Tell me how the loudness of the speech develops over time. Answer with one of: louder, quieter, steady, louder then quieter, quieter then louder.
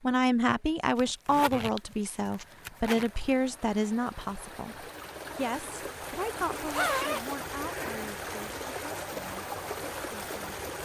quieter.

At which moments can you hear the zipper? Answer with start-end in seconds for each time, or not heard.
0.9-3.1, 6.7-8.2.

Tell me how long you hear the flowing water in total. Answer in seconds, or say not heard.
11 s.